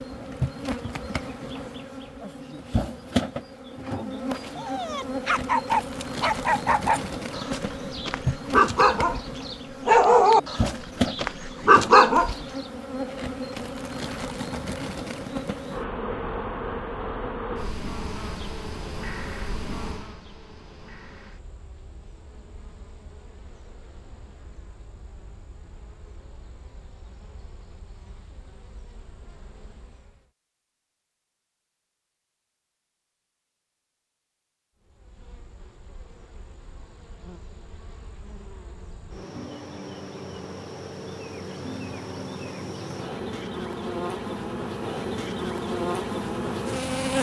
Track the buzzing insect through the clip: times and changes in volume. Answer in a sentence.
You can hear the buzzing insect from 0.0 to 30.3 s, getting quieter; and from 34.8 to 47.1 s, getting louder.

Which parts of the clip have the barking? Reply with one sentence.
The barking can be heard from 4.5 to 12.3 s.